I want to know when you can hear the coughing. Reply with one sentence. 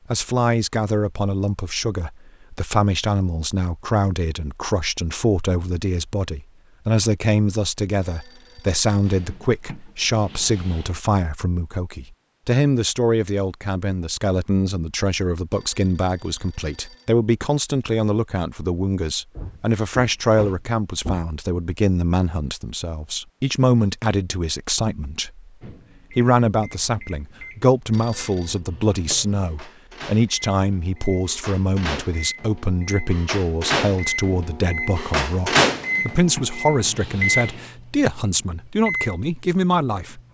You can't hear the coughing here.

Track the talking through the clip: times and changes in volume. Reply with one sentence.
You can hear the talking from 0.1 to 25.4 s, at a steady volume; and from 26.1 to 40.2 s, at a steady volume.